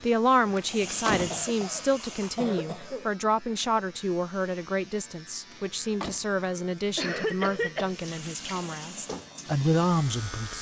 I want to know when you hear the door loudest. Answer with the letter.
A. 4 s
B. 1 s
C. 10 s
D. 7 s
B.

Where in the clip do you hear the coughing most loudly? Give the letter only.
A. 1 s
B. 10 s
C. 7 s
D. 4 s
C.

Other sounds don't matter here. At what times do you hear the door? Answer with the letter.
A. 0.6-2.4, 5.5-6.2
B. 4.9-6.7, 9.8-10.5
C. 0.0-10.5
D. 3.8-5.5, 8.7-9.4
A.